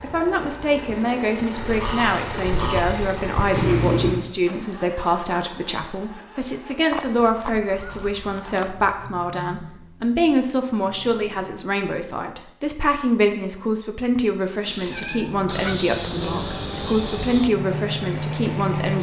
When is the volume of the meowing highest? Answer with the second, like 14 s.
4 s.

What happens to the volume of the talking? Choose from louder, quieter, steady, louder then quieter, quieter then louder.
steady.